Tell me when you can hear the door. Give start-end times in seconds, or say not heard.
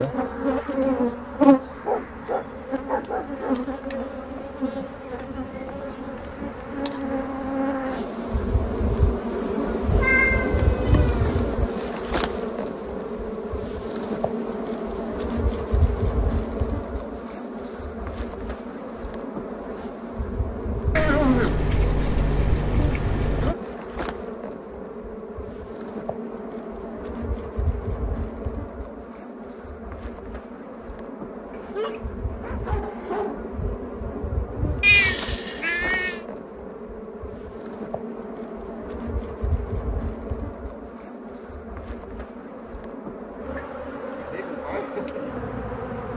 not heard.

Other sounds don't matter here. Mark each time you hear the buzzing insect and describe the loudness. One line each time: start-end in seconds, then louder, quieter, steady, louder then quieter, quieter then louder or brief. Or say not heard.
0.0-46.1 quieter.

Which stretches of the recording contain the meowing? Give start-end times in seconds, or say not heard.
9.9-11.6, 20.9-23.6, 34.8-36.2.